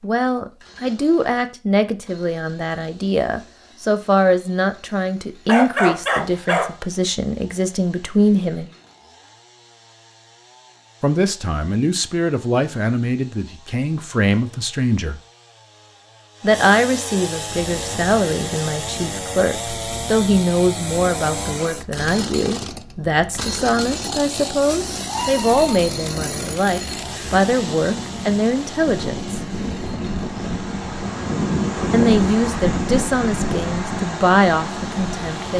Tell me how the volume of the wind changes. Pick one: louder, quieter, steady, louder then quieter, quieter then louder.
louder.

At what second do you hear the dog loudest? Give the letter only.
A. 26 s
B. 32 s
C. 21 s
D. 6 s
D.